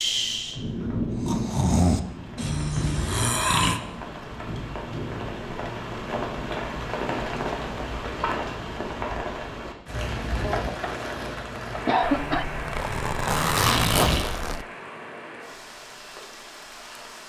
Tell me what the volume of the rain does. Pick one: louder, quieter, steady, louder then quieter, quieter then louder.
quieter.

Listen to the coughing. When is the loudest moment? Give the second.
12 s.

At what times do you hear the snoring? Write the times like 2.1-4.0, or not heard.
0.0-3.8, 11.6-14.2.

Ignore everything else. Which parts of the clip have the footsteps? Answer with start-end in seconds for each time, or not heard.
not heard.